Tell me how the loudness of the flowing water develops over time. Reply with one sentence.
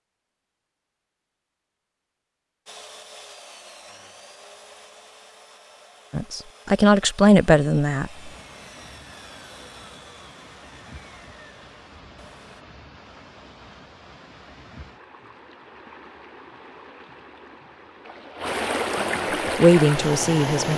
The loudness of the flowing water goes up.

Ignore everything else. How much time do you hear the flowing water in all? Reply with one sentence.
You can hear the flowing water for 13 seconds altogether.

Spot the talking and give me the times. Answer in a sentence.
The talking can be heard from 6.1 to 8.3 s and from 19.6 to 20.7 s.